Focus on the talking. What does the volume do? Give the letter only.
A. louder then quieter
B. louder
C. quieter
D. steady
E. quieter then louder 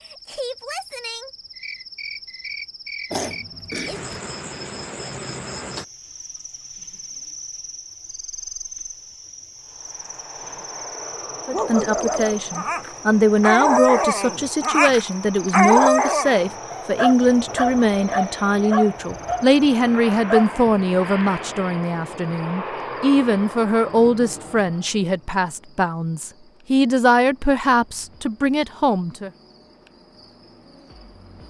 D.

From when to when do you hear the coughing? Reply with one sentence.
You can hear the coughing from 3.1 to 4.1 s.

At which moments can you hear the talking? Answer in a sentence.
The talking can be heard from 11.4 to 29.3 s.